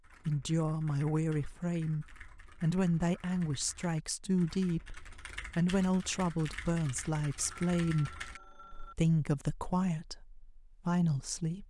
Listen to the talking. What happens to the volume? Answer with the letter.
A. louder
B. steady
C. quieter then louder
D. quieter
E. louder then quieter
B.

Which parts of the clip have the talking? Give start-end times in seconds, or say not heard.
0.2-11.6.